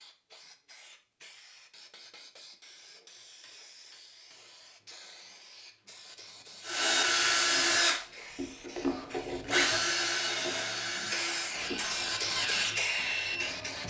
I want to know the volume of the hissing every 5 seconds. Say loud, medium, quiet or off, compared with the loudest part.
quiet, quiet, loud.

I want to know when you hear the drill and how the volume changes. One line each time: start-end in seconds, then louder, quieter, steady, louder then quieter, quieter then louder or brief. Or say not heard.
6.7-13.8 quieter.